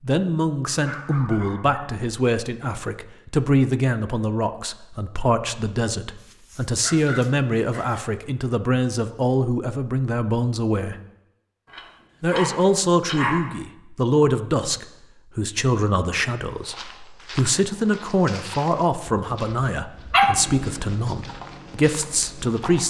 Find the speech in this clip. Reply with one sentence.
The speech can be heard from 0.0 to 10.9 s and from 12.2 to 22.8 s.